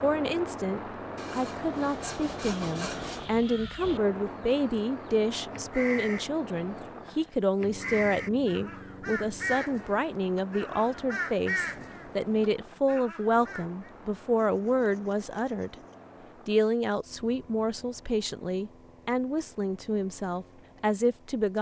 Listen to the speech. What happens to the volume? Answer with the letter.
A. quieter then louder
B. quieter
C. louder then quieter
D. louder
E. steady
E.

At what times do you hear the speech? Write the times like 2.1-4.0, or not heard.
0.0-15.8, 16.4-21.5.